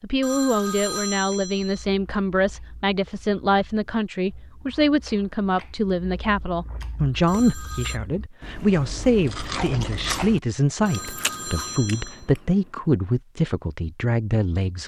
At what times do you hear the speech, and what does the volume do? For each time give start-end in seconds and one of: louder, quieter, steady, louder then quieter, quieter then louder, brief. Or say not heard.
0.0-14.8 steady.